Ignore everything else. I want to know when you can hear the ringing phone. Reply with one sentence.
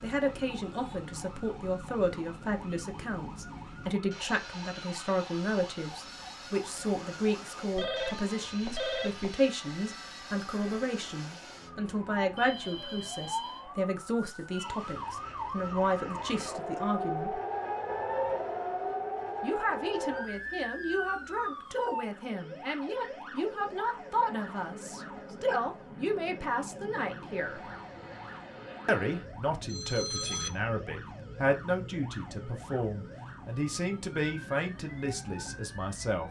The ringing phone can be heard from 7.8 to 9.3 s, from 12.3 to 13.7 s and from 29.6 to 30.5 s.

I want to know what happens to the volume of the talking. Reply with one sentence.
The loudness of the talking stays about the same.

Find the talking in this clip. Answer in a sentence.
The talking can be heard from 0.0 to 17.4 s, from 19.4 to 27.6 s and from 28.9 to 36.2 s.